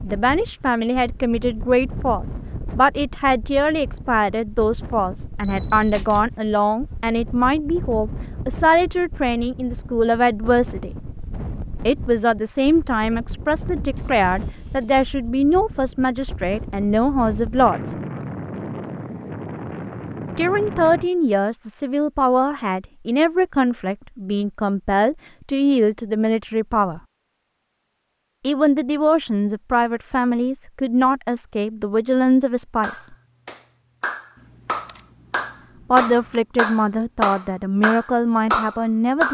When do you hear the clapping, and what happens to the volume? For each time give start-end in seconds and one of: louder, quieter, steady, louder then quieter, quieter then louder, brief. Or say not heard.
32.8-39.2 louder.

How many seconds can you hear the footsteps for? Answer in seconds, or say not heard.
not heard.